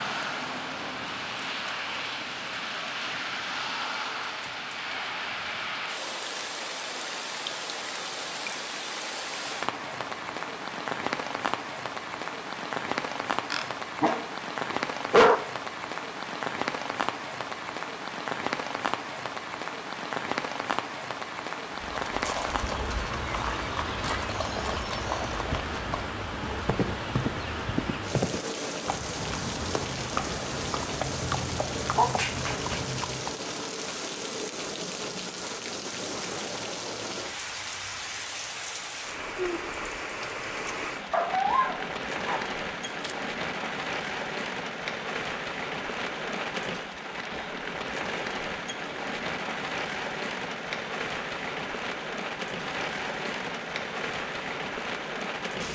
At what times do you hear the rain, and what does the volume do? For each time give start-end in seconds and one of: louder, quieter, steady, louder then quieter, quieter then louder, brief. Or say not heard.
0.0-55.6 steady.